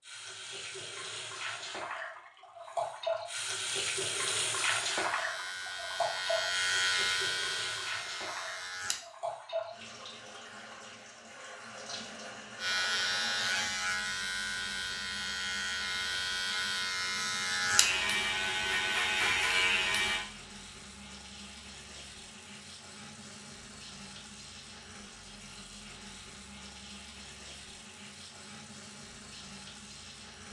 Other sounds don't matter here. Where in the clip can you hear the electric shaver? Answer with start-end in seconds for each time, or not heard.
4.8-9.0, 12.6-20.2.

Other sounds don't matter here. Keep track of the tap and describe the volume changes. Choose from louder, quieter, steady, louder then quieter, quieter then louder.
quieter.